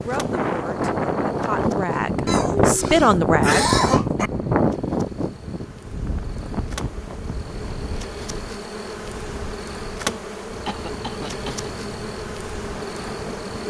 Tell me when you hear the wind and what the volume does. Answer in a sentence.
The wind can be heard from 0.0 to 13.6 s, getting quieter.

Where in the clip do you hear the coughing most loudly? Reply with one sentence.
The volume of the coughing peaks at 4 seconds.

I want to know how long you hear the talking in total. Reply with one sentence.
You can hear the talking for 4 seconds altogether.